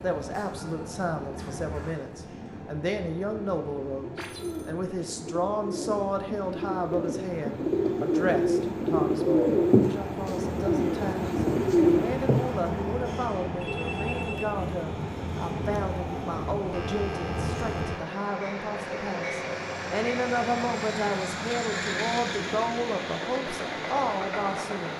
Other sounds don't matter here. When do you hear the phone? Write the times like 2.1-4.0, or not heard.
4.2-4.8, 13.6-14.4, 16.7-18.0.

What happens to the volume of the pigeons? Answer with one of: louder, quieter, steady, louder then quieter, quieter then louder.
louder.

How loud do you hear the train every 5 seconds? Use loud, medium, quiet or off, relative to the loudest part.
medium, medium, loud, loud, loud.